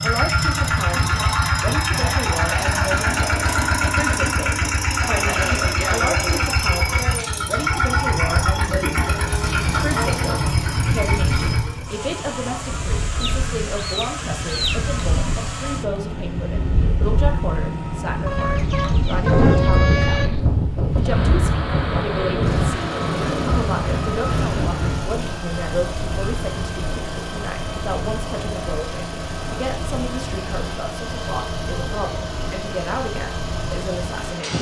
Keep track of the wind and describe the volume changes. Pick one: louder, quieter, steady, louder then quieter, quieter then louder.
louder then quieter.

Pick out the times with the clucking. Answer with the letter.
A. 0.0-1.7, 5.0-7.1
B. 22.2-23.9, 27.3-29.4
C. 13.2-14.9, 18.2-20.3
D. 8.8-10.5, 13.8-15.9
C.